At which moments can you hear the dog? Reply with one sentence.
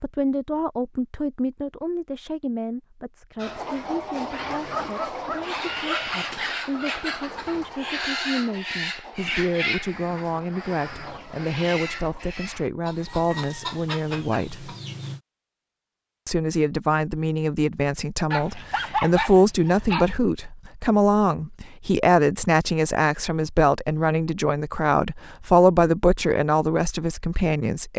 You can hear the dog from 4.5 to 6.2 s and from 18.3 to 20.1 s.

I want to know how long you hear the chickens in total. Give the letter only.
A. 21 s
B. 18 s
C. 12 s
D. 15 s
C.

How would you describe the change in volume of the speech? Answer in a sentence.
The loudness of the speech goes up.